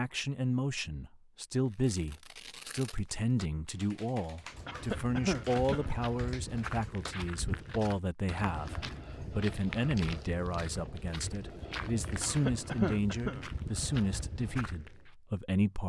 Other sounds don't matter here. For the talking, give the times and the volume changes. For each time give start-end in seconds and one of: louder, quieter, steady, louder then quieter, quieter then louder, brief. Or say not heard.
0.0-15.8 steady.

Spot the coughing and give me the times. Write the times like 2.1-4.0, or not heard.
4.7-5.9, 12.2-13.4.